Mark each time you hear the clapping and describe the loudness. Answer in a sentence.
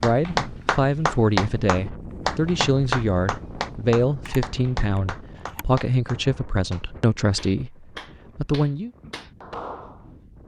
The clapping can be heard from 0.0 to 10.2 s, getting quieter then louder.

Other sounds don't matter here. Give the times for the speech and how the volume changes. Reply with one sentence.
The speech can be heard from 0.0 to 8.9 s, at a steady volume.